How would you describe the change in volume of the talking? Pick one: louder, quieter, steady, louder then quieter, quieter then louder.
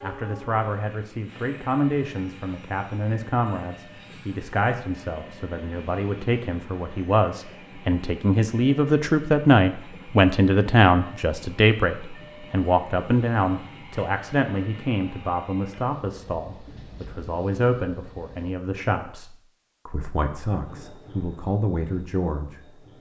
louder then quieter.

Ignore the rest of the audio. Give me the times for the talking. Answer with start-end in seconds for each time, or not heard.
0.0-22.6.